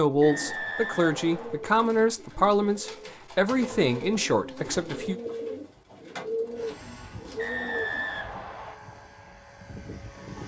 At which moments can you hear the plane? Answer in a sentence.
The plane can be heard from 6.5 to 10.4 s.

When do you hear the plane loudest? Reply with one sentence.
The volume of the plane peaks at 10 seconds.